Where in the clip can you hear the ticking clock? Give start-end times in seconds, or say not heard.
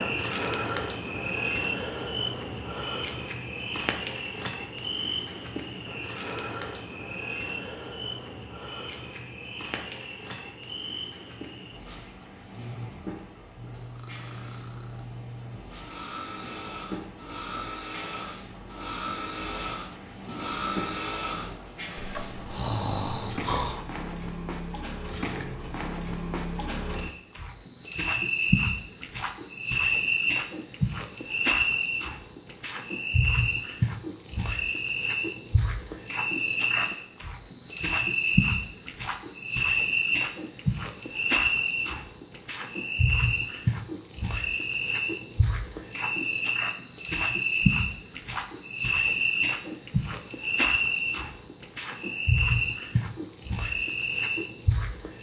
not heard.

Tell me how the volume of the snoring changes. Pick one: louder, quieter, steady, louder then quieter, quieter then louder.
louder.